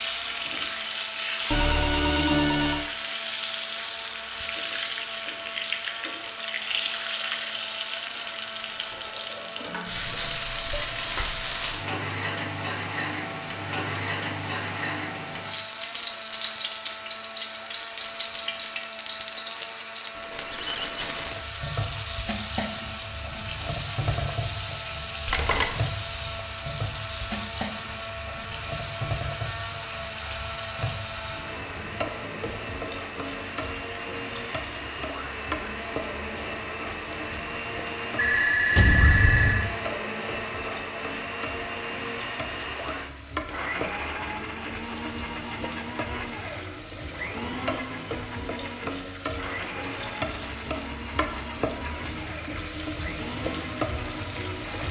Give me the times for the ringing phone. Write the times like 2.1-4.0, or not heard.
1.5-2.9, 25.2-25.8, 38.1-39.7.